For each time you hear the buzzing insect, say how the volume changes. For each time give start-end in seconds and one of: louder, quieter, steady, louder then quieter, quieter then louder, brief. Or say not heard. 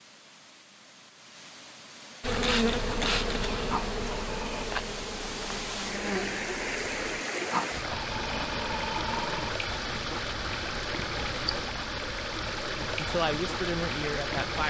2.2-7.2 quieter.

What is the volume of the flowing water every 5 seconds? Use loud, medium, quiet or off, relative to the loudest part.
quiet, loud, loud.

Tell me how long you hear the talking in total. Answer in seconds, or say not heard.
2 s.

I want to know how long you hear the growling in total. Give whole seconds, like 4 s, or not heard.
3 s.